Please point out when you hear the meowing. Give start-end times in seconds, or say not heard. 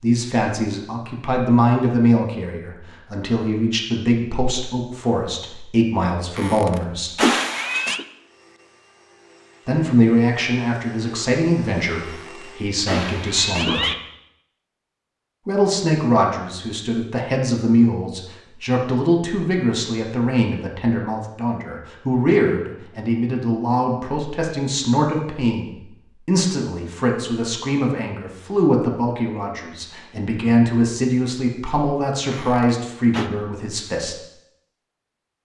6.3-8.1, 12.0-13.9, 32.3-33.3.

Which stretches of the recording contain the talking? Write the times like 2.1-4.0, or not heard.
0.0-7.2, 9.7-13.8, 15.4-34.2.